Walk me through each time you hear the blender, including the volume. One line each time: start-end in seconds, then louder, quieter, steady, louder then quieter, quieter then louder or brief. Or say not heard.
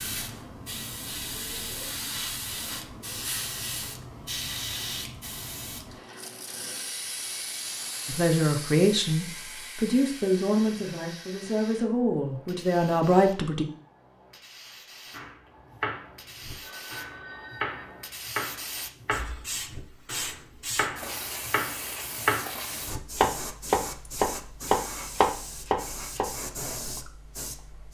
not heard.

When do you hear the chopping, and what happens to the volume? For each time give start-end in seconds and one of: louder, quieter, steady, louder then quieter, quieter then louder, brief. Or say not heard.
15.1-26.3 louder.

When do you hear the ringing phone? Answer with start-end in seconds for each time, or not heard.
16.6-18.1.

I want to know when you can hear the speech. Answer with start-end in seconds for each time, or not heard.
8.1-13.7.